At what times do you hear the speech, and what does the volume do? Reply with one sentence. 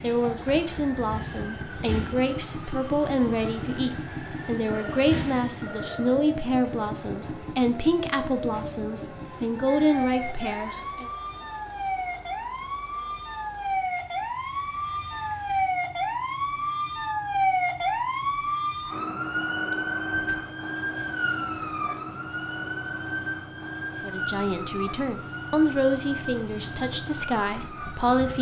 You can hear the speech from 0.0 to 11.1 s, at a steady volume; and from 24.0 to 28.3 s, getting louder then quieter.